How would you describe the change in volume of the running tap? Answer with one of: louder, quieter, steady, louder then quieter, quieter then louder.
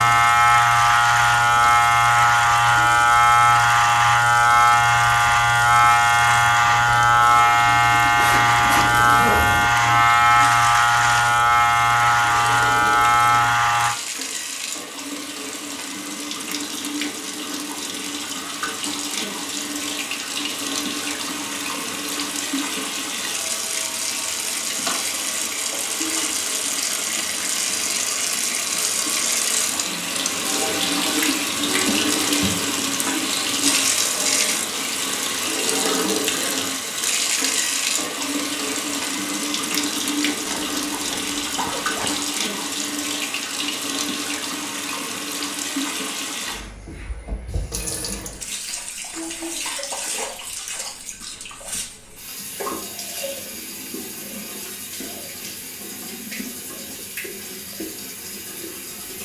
louder then quieter.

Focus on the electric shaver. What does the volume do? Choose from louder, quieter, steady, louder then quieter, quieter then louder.
steady.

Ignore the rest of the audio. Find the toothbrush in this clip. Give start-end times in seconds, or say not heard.
not heard.